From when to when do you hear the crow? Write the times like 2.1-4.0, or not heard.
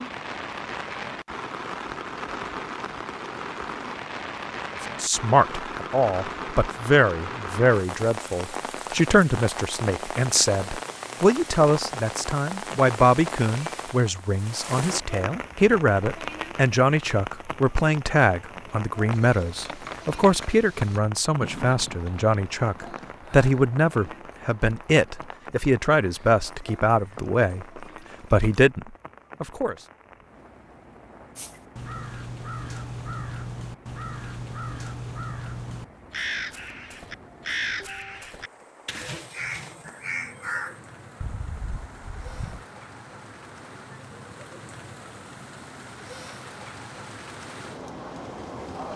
31.4-42.6.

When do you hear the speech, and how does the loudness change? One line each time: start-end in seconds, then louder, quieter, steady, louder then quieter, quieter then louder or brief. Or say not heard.
5.0-29.8 steady.